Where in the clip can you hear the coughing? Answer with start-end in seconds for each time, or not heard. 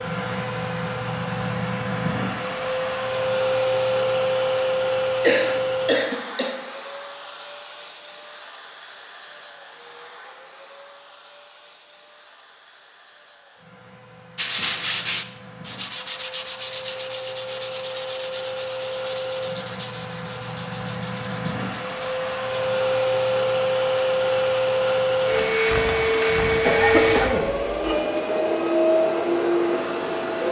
5.2-6.5, 26.6-27.9.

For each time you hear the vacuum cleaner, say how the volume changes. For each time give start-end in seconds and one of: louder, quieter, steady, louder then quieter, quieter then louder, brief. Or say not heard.
0.0-30.4 quieter then louder.